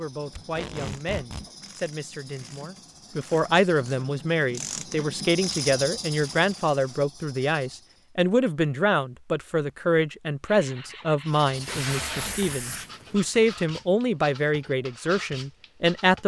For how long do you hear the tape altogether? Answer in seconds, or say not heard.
3 s.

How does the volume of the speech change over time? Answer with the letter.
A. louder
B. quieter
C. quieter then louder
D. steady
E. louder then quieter
A.